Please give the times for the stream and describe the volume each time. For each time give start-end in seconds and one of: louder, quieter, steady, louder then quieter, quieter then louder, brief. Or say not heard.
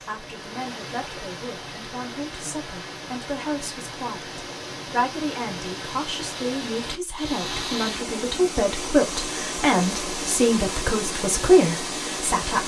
0.0-12.6 louder.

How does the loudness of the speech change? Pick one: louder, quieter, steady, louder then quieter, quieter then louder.
louder.